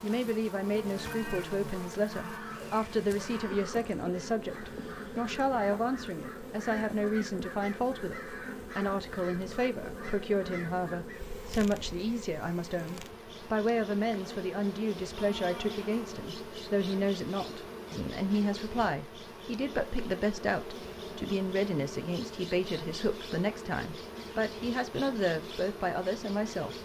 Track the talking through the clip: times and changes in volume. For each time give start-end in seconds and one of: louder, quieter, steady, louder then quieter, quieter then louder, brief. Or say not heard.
0.0-26.8 steady.